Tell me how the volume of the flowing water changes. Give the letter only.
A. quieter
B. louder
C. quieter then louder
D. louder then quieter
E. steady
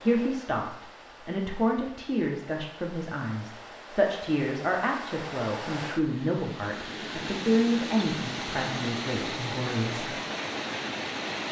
B.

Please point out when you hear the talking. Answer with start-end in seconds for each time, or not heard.
0.0-10.2.